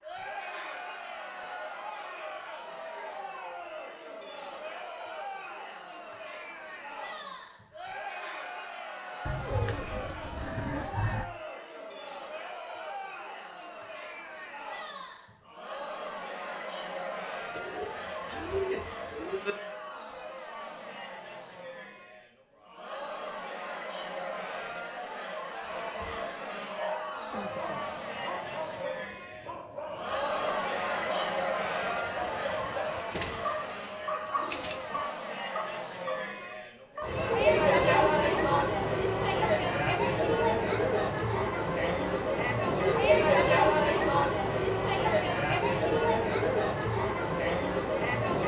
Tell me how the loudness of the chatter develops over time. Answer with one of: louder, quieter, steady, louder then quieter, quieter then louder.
louder.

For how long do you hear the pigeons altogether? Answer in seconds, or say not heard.
6 s.